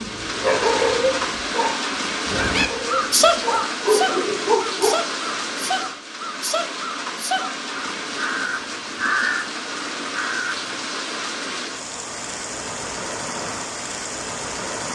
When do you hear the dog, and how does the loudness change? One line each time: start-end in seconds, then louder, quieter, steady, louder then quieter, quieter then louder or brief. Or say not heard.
0.0-5.0 quieter then louder.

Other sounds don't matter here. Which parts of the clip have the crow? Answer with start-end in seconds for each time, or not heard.
2.3-10.8.